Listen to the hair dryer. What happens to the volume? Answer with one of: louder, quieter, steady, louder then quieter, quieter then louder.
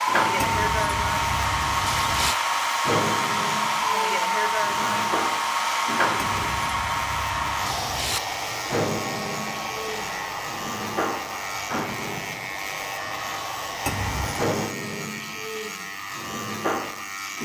quieter.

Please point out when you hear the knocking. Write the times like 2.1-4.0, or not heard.
not heard.